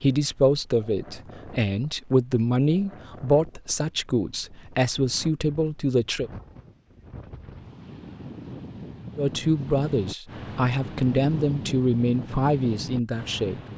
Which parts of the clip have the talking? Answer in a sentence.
The talking can be heard from 0.0 to 6.3 s and from 9.2 to 13.6 s.